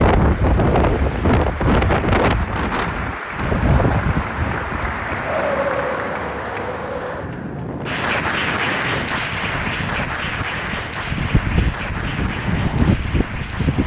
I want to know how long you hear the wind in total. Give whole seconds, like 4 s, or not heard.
14 s.